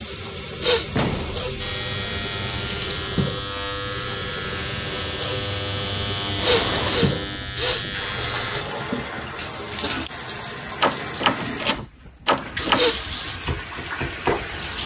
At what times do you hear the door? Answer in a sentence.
You can hear the door from 0.9 to 1.6 s, from 6.3 to 7.1 s and from 10.8 to 12.8 s.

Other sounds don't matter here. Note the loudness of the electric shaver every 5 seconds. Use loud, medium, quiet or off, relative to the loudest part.
loud, loud, off.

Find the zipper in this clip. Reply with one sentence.
The zipper can't be heard in this clip.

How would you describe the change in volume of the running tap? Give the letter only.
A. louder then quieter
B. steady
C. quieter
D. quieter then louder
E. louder
B.